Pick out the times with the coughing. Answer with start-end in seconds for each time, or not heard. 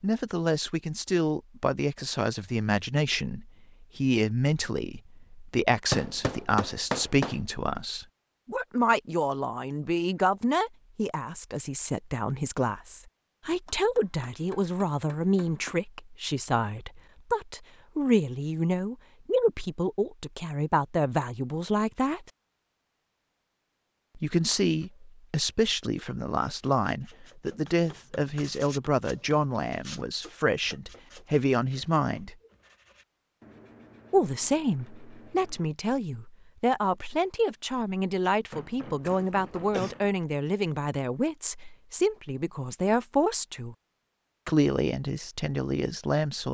39.0-40.0.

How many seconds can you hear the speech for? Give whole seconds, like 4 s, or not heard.
42 s.